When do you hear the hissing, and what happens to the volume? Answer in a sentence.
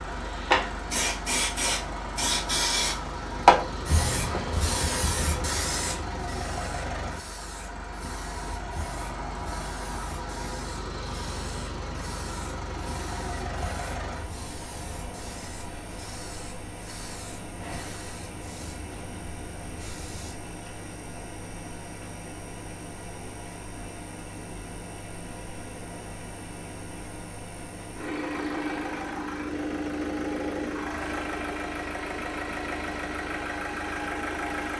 You can hear the hissing from 0.0 to 20.4 s, getting quieter.